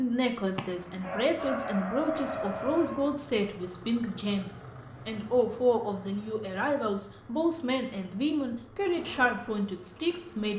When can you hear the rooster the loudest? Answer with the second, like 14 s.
2 s.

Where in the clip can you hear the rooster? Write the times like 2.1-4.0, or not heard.
0.6-3.1.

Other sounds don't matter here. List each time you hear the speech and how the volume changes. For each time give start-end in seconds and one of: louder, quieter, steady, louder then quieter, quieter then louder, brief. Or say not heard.
0.0-10.5 steady.